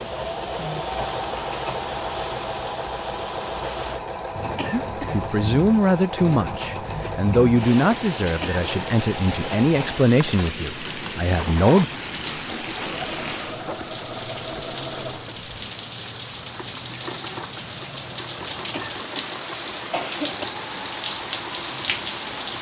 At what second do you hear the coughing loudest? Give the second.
20 s.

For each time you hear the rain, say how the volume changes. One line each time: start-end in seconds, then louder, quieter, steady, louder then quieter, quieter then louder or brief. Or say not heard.
0.0-22.5 louder.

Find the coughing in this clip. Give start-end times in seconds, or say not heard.
4.5-5.2, 8.2-8.7, 18.7-20.4.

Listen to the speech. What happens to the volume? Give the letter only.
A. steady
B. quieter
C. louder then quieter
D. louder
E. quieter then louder
B.